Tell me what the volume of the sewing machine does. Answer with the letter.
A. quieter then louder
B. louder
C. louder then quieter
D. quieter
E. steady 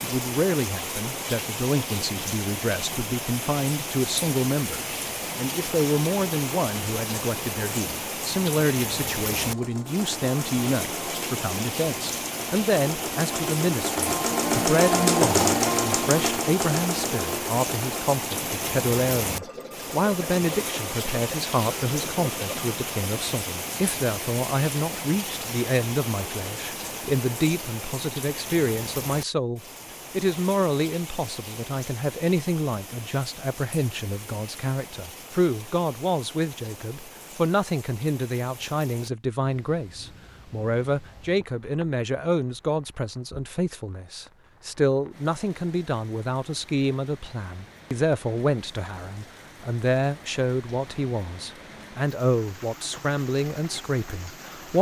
C.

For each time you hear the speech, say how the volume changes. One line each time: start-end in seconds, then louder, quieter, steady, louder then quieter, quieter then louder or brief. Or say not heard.
0.0-54.7 steady.